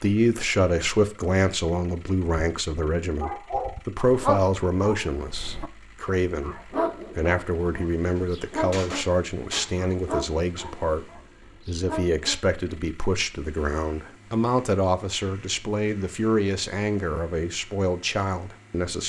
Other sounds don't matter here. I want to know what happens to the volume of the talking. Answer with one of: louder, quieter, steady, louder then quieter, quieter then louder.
steady.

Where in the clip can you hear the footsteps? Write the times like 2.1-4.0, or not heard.
not heard.